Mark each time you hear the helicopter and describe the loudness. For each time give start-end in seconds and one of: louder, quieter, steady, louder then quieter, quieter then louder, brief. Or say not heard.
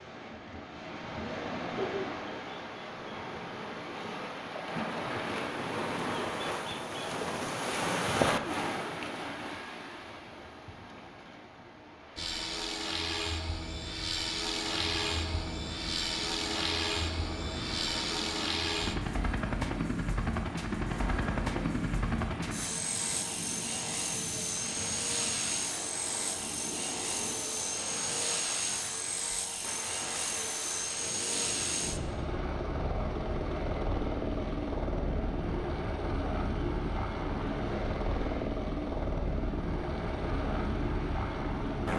12.2-41.9 steady.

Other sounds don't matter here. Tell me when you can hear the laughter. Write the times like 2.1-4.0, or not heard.
1.7-2.2.